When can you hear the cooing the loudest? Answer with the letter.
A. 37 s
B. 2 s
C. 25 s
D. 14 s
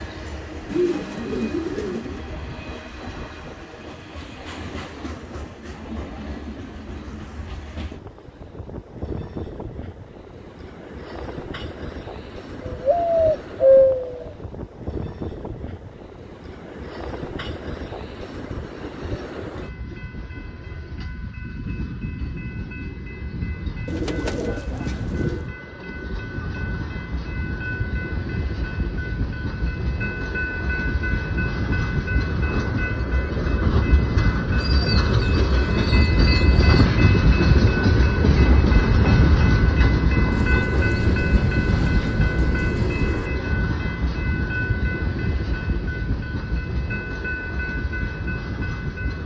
D.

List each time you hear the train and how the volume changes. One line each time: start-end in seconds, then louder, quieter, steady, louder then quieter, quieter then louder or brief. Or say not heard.
0.0-49.2 louder.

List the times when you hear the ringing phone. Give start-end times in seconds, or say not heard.
not heard.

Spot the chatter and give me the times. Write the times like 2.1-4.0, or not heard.
not heard.